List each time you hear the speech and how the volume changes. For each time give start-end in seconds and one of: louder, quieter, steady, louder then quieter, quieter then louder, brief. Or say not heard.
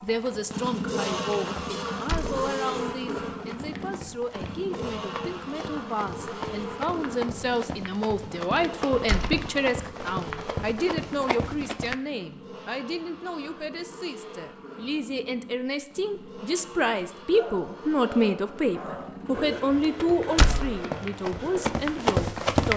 0.0-22.7 louder.